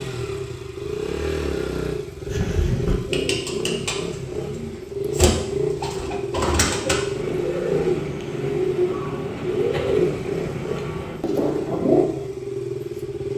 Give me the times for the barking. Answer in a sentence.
The barking can't be heard in this clip.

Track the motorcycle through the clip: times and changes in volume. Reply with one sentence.
You can hear the motorcycle from 0.0 to 13.3 s, at a steady volume.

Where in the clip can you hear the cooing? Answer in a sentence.
The cooing can be heard from 2.2 to 12.1 s.